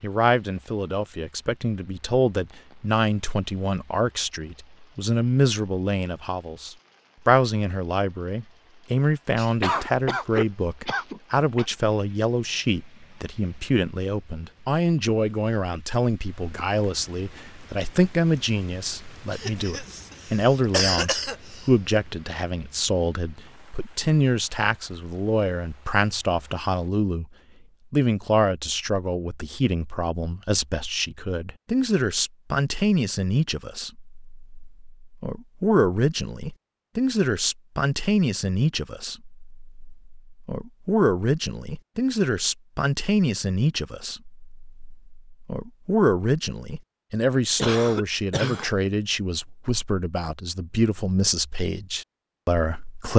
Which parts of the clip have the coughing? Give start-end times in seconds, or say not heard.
9.3-11.7, 19.3-21.7, 47.5-48.7.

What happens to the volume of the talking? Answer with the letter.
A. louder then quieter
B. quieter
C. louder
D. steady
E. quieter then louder
D.